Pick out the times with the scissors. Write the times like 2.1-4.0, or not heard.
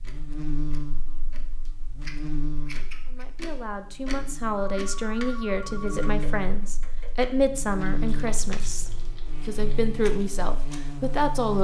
2.0-3.2, 8.0-9.2.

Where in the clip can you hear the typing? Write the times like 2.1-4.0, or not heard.
not heard.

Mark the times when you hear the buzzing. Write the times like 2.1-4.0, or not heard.
0.0-11.5.